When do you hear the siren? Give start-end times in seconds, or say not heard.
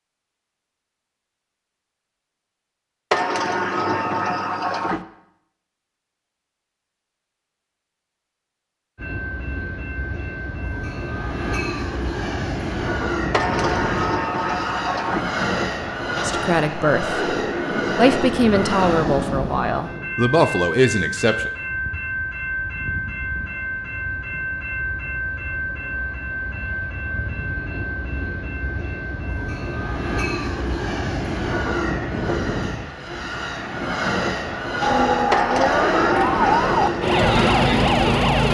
34.8-38.4.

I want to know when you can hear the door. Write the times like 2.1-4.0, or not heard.
3.1-5.0, 13.3-15.2, 35.3-37.0.